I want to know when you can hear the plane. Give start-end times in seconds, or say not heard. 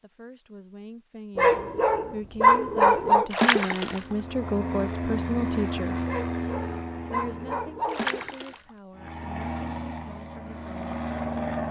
3.9-7.9, 8.9-11.6.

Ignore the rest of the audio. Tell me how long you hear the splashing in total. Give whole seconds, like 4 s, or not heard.
2 s.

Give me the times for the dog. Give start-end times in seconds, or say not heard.
1.4-3.3, 6.0-8.3.